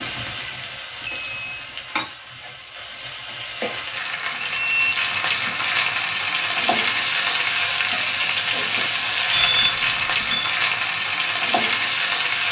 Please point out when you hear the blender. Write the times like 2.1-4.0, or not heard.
not heard.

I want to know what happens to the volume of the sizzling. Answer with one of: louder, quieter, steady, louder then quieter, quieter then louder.
louder.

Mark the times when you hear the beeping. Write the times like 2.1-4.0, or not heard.
1.1-1.8, 4.4-5.0, 9.3-10.6.